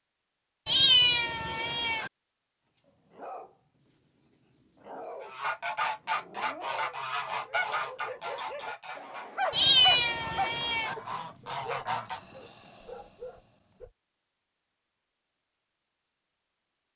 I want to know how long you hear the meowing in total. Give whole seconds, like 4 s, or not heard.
3 s.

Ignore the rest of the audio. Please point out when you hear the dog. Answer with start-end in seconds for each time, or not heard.
2.8-13.9.